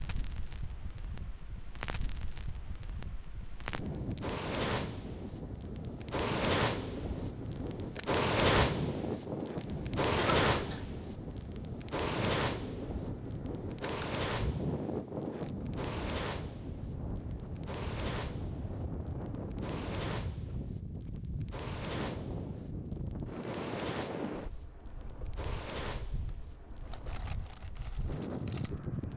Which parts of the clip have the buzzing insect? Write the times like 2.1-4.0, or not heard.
not heard.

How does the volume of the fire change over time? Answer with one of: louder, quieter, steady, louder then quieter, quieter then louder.
louder then quieter.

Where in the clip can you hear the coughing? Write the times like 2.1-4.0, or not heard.
10.2-10.8.